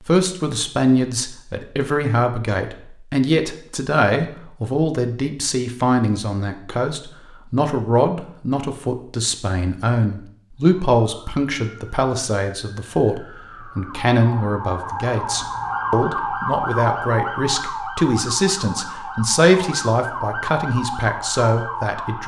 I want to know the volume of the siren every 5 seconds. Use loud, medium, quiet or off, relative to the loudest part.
off, off, medium, loud, loud.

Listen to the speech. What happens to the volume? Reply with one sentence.
The volume of the speech stays about the same.